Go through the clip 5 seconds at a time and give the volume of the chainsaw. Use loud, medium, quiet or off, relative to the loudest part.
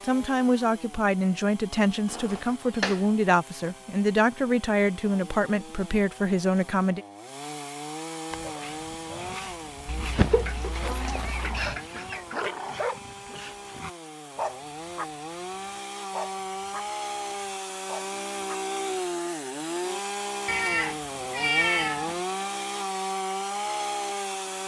quiet, medium, medium, loud, loud.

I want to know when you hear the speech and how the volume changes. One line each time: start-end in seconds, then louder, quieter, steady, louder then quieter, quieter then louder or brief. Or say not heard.
0.0-7.0 steady.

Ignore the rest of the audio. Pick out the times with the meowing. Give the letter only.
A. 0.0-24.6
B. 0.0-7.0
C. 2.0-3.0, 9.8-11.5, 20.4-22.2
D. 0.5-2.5
C.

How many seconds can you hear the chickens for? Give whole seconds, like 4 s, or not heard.
2 s.